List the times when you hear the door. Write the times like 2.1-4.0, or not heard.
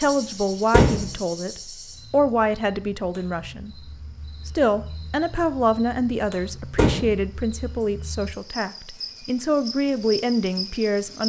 0.7-1.1, 6.8-7.2.